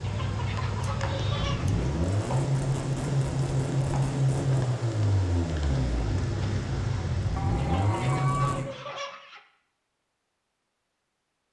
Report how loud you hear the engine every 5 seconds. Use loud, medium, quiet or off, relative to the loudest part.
loud, loud, off.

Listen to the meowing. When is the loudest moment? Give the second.
8 s.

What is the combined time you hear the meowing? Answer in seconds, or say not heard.
2 s.